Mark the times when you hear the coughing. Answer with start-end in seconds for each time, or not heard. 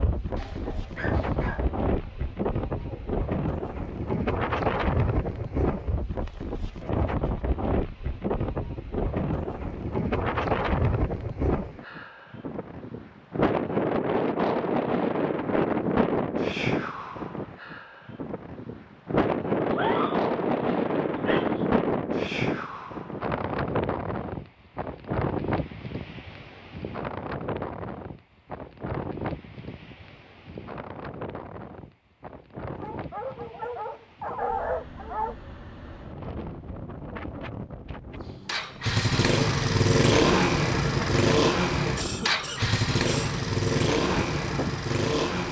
42.0-43.4.